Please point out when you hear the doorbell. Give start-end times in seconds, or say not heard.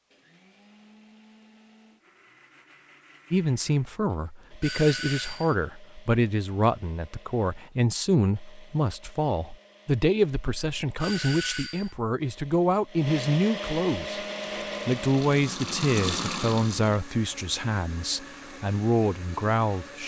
4.6-5.5, 11.0-11.9.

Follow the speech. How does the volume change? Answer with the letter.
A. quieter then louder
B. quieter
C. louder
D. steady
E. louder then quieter
D.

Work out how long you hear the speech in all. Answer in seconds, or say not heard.
16 s.